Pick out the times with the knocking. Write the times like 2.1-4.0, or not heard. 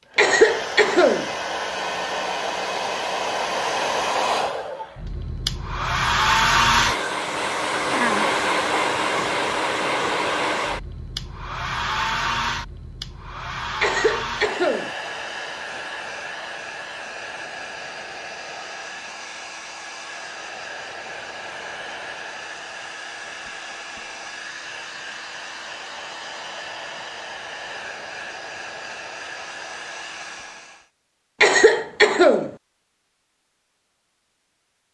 not heard.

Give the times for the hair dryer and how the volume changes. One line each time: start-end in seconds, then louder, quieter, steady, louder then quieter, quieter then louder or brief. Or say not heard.
0.0-30.9 quieter.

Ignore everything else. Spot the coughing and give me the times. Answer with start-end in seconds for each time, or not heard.
0.1-1.3, 13.8-14.9, 31.4-32.5.